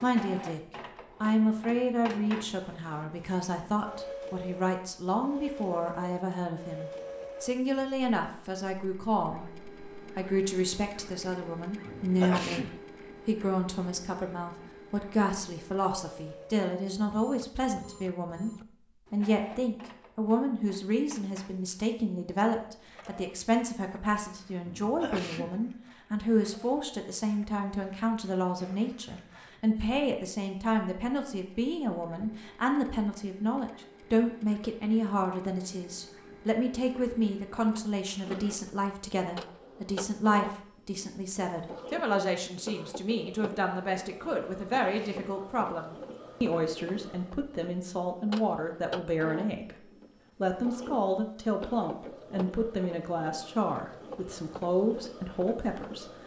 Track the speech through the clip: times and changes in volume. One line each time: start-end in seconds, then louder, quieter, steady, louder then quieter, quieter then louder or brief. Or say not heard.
0.0-0.6 brief
1.2-56.2 steady.